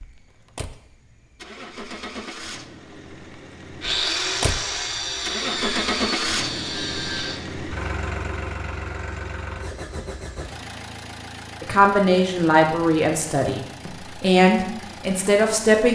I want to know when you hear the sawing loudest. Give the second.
4 s.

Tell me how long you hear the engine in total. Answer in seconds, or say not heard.
16 s.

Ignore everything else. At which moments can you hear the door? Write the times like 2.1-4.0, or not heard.
not heard.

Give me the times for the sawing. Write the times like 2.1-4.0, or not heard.
3.8-7.4.